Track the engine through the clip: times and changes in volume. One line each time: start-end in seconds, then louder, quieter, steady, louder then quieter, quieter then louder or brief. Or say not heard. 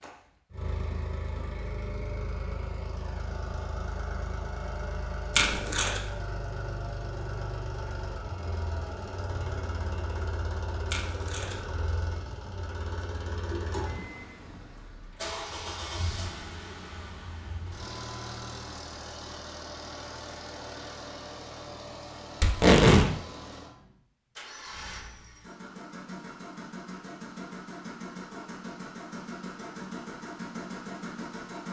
0.0-31.6 steady.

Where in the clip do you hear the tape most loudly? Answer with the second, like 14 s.
23 s.